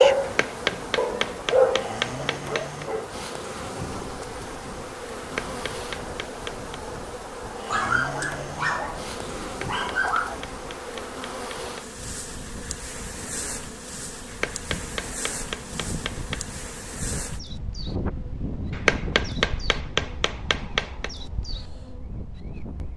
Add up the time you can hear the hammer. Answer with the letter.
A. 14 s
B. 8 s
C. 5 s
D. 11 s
D.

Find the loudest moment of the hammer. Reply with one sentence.
The loudest moment of the hammer is at 19 seconds.